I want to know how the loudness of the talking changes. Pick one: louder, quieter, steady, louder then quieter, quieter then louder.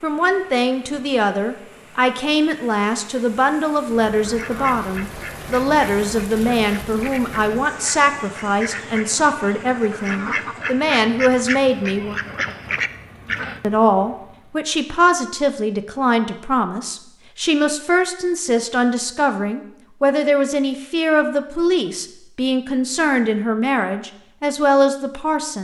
steady.